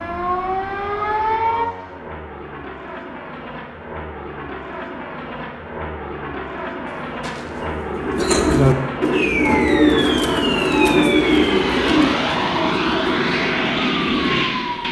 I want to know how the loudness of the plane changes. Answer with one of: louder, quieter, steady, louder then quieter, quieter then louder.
louder.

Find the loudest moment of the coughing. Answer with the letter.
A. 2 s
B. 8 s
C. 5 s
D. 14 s
B.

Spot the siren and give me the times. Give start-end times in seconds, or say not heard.
0.0-1.7, 9.1-14.8.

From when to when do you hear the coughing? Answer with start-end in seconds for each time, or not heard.
6.8-8.6.